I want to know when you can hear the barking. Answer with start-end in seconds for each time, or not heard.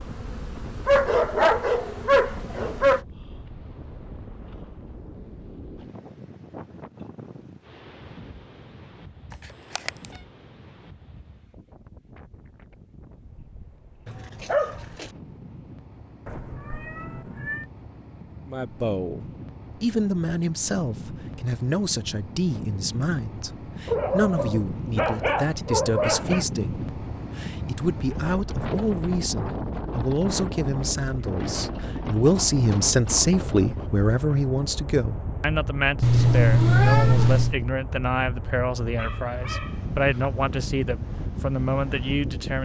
0.8-3.0, 14.1-15.1, 23.9-26.4, 39.0-40.3.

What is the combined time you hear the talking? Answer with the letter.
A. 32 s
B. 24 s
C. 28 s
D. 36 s
B.